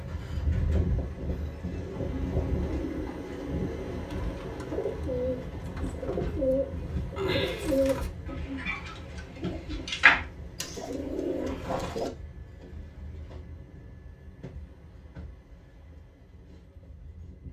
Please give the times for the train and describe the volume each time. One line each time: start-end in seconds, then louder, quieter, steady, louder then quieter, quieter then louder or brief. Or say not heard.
0.0-17.4 quieter.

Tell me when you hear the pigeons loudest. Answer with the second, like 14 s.
10 s.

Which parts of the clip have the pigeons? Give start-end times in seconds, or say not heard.
1.6-12.1.